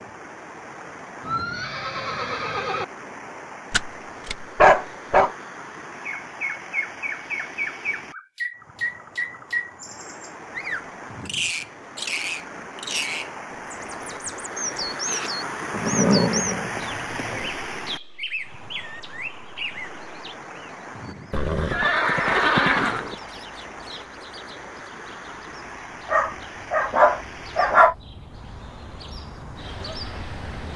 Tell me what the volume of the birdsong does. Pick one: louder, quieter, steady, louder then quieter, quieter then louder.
quieter then louder.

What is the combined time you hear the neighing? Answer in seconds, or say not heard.
5 s.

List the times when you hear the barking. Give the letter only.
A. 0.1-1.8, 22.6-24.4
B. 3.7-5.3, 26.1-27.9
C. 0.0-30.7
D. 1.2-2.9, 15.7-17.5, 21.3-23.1
B.